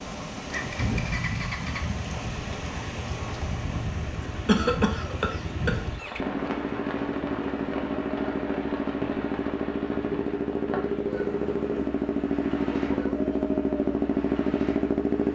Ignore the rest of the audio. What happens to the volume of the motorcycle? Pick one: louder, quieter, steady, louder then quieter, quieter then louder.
louder.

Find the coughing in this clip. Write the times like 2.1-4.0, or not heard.
4.5-5.8.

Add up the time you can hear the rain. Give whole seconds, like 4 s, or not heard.
15 s.